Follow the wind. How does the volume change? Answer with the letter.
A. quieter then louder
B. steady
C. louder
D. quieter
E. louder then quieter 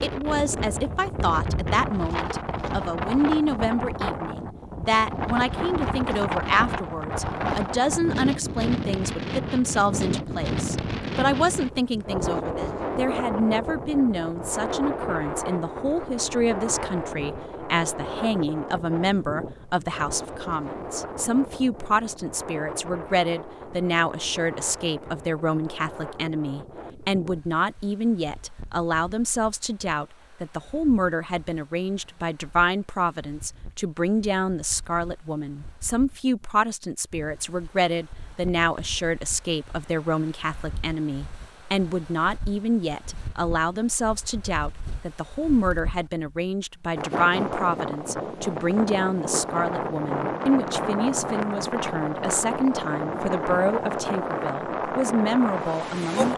A.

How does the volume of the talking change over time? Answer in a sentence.
The loudness of the talking stays about the same.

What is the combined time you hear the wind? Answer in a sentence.
The wind can be heard for 56 seconds in total.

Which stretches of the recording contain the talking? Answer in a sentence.
The talking can be heard from 0.0 to 56.3 s.